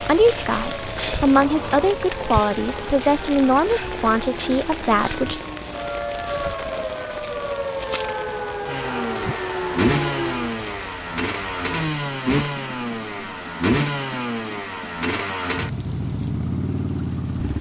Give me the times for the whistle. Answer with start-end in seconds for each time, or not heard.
not heard.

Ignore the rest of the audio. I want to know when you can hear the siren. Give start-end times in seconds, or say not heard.
0.0-10.6.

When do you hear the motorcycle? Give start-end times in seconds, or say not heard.
8.7-17.5.